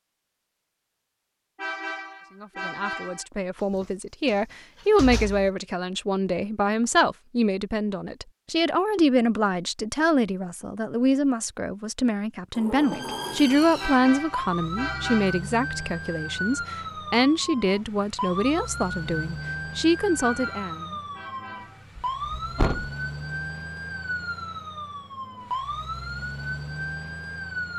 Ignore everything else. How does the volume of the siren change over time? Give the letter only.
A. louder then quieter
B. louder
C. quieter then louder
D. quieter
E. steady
E.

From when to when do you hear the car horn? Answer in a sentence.
The car horn can be heard from 1.6 to 3.2 s, from 13.8 to 15.3 s and from 20.1 to 21.9 s.